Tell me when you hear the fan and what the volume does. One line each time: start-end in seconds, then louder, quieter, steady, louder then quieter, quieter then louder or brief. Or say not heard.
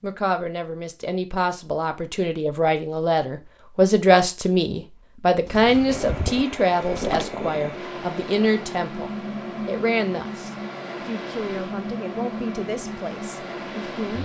5.8-14.2 steady.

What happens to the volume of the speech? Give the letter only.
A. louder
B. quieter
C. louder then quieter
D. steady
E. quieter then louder
C.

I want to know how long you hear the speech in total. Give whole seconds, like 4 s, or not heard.
14 s.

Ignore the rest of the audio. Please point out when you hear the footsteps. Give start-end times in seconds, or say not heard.
not heard.